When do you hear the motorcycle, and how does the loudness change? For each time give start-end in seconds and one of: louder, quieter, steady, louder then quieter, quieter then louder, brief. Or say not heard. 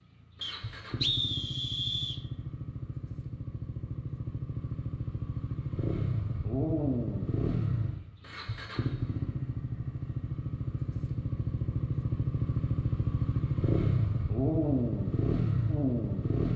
0.0-16.5 louder.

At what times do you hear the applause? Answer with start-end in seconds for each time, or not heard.
not heard.